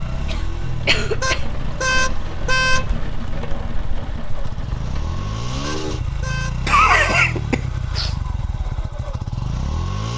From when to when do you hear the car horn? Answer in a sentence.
You can hear the car horn from 1.2 to 2.9 s and from 5.6 to 7.2 s.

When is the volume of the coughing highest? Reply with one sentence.
The volume of the coughing peaks at 7 seconds.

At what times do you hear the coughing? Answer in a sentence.
You can hear the coughing from 0.2 to 1.4 s and from 6.7 to 8.2 s.